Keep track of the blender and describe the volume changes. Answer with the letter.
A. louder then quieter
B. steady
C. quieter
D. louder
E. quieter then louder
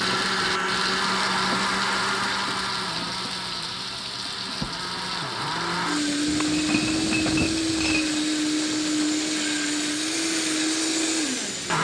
E.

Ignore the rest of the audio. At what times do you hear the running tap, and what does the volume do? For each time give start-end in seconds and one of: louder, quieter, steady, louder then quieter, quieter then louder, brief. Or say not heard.
0.0-11.7 quieter.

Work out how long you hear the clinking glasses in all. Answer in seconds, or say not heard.
2 s.